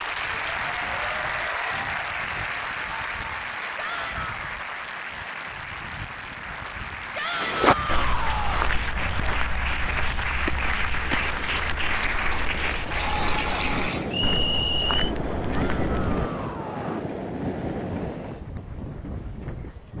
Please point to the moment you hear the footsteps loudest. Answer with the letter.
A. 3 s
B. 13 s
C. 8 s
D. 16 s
C.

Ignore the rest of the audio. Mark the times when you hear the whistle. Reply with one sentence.
You can hear the whistle from 14.1 to 15.2 s.